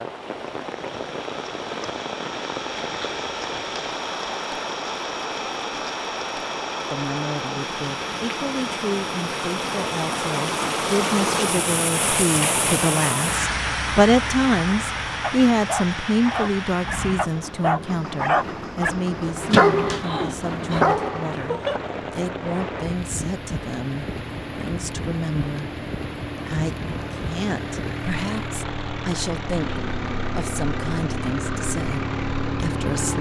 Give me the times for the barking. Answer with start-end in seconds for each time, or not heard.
15.2-21.8.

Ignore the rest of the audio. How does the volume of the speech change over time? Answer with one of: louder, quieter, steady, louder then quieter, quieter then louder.
louder then quieter.